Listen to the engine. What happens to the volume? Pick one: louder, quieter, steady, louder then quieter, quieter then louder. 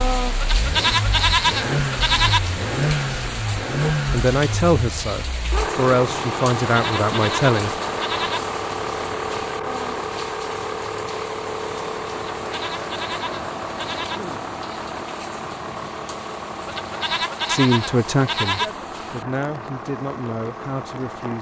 quieter.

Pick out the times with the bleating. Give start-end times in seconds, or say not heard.
0.4-2.4, 6.7-8.4, 12.4-14.2, 16.6-18.7.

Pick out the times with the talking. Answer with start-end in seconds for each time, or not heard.
4.1-7.8, 17.4-21.3.